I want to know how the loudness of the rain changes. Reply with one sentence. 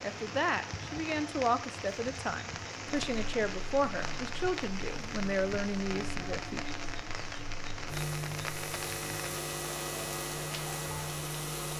The volume of the rain stays about the same.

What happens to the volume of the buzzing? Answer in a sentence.
The volume of the buzzing goes up.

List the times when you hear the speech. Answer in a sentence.
The speech can be heard from 0.0 to 6.7 s.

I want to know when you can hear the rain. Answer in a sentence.
You can hear the rain from 0.0 to 11.7 s.